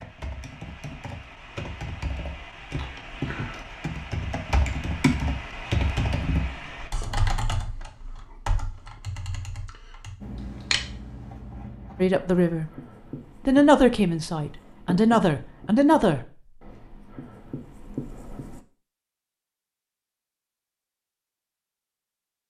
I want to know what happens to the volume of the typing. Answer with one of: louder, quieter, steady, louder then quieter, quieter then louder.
louder then quieter.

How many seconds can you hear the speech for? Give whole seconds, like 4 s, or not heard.
4 s.